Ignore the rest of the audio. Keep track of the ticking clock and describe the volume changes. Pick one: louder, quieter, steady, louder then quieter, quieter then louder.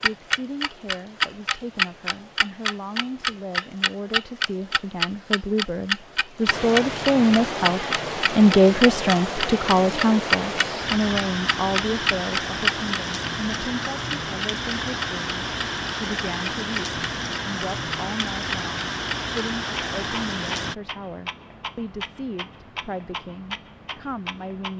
quieter.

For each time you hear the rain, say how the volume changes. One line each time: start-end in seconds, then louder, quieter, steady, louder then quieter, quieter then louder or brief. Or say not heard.
0.0-20.8 louder.